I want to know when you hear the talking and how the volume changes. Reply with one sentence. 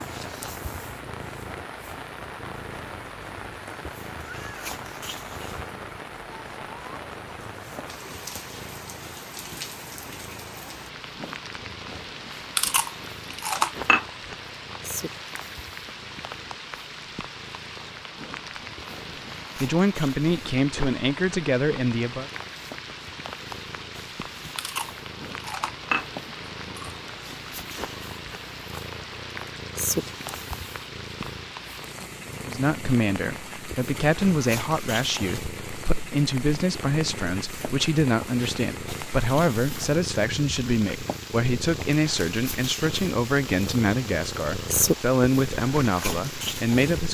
You can hear the talking briefly from 19.6 to 22.3 s; and from 32.5 to 47.1 s, at a steady volume.